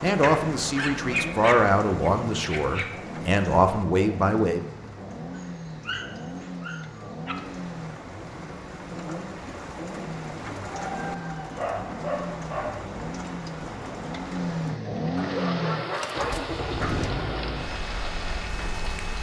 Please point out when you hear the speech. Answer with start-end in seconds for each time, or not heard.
0.0-4.6.